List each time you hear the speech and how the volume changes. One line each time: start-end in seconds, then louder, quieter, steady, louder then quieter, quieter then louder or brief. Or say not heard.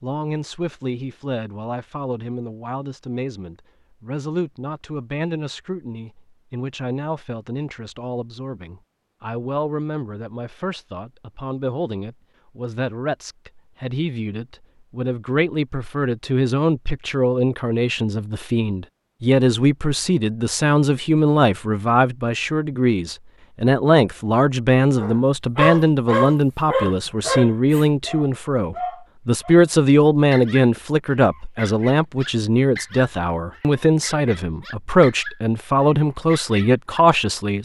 0.0-37.5 louder.